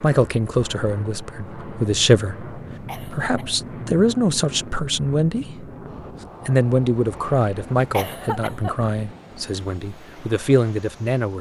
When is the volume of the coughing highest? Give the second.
8 s.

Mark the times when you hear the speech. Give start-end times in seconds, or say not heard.
0.0-5.7, 6.5-11.3.